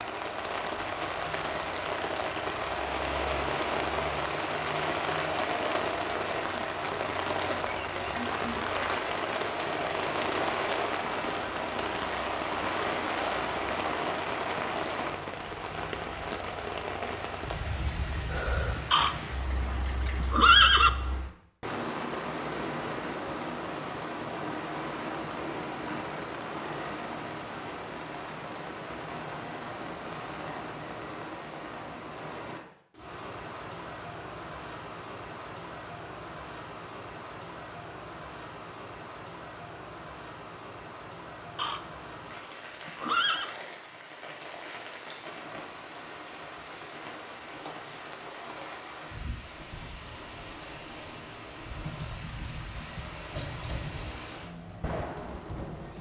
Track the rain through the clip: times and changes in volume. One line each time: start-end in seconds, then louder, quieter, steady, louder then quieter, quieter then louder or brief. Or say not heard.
0.0-55.9 quieter.